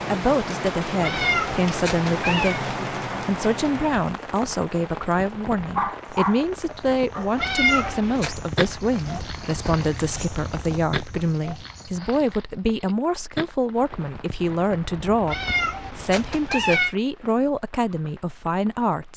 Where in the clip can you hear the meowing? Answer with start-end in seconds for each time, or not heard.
1.0-2.6, 7.3-8.3, 15.2-16.9.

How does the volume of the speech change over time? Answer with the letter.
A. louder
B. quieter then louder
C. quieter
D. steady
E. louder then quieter
D.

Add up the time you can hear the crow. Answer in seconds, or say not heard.
not heard.